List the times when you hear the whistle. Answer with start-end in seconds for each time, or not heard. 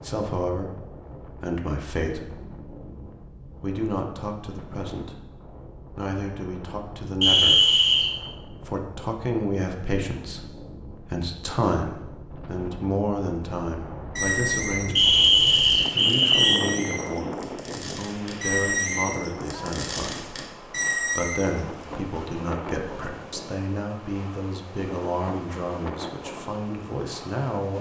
7.2-8.1, 14.9-16.6.